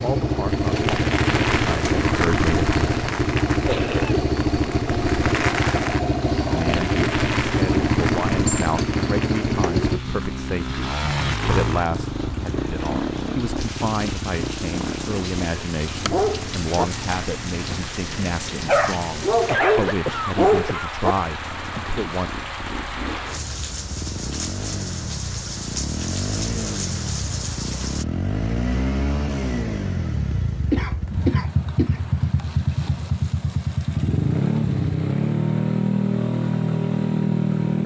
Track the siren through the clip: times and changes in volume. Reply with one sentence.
The siren can't be heard in this clip.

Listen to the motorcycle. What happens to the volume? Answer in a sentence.
The loudness of the motorcycle goes down, then up.